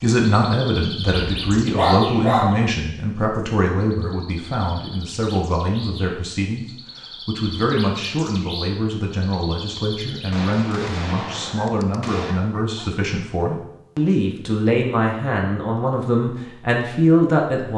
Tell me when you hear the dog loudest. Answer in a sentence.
The volume of the dog peaks at 2 seconds.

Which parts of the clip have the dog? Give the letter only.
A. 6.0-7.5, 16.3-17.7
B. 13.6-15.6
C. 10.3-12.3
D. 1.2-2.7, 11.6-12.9
D.